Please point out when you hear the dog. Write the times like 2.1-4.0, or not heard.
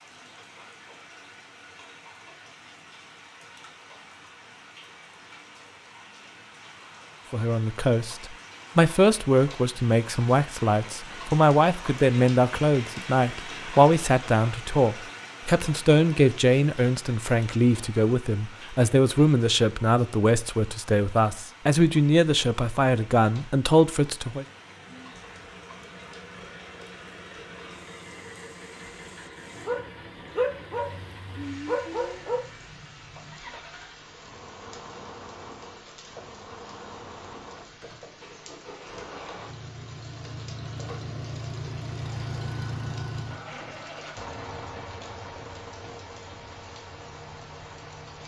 29.6-32.5.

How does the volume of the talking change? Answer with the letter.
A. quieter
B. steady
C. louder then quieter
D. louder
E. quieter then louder
B.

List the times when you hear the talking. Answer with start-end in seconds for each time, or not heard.
7.3-24.4.